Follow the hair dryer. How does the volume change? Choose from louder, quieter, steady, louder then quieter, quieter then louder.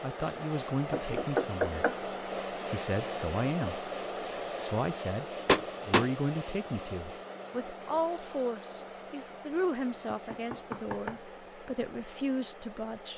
quieter.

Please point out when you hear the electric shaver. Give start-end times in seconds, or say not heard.
not heard.